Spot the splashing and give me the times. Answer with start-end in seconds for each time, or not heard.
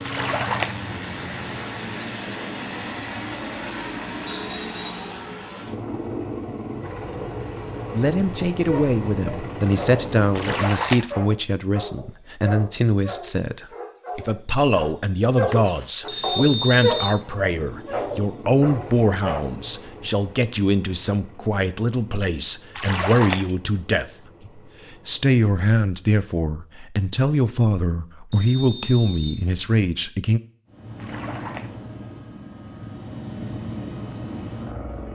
0.1-0.8, 10.3-11.1, 22.8-23.5, 30.9-31.8.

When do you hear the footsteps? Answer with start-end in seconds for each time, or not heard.
not heard.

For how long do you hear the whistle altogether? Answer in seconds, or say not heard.
3 s.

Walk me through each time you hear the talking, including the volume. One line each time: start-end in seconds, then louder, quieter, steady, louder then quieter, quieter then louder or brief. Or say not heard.
7.9-30.4 steady.